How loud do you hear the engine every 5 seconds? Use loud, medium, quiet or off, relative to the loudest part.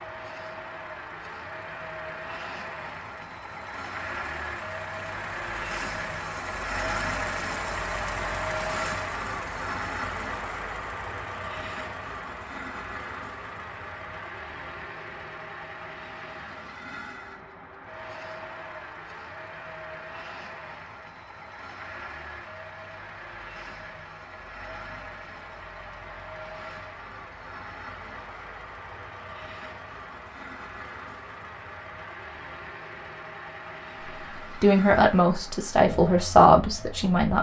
medium, loud, medium, medium, medium, medium, medium, medium.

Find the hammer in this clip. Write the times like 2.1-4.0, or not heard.
not heard.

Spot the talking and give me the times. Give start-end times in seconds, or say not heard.
34.6-37.3.